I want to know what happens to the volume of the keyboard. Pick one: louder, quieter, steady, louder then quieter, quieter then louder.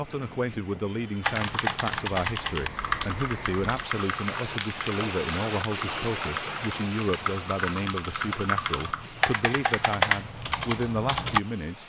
quieter then louder.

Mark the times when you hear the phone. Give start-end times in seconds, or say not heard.
not heard.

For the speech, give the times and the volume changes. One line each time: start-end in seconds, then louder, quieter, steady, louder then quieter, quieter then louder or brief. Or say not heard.
0.0-11.8 steady.